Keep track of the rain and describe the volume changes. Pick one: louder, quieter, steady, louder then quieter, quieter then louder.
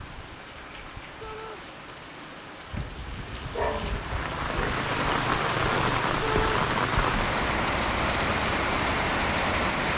louder.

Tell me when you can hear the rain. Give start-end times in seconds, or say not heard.
0.0-9.9.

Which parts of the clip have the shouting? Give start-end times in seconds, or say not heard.
1.2-1.6, 6.2-6.7.